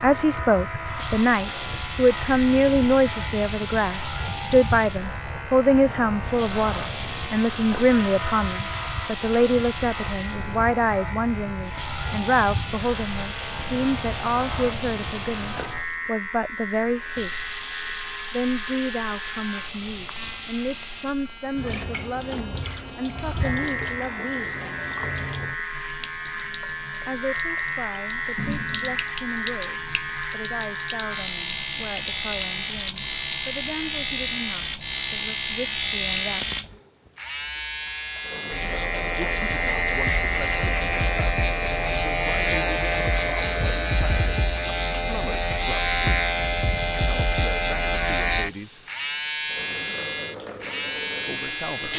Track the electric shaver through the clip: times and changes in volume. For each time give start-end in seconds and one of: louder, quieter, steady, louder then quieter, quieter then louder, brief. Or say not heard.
0.0-51.9 louder.